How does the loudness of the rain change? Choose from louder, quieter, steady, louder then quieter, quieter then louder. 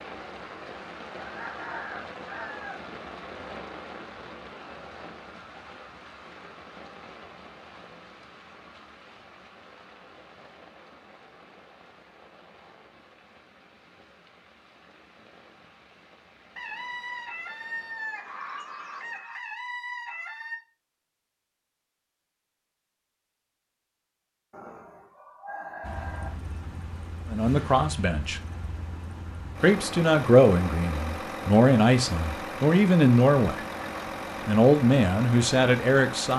quieter.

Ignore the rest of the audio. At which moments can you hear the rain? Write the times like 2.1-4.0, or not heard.
0.0-19.2.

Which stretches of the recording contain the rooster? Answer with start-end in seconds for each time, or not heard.
1.1-2.8, 16.6-20.6, 24.5-26.3.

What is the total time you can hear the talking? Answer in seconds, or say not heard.
7 s.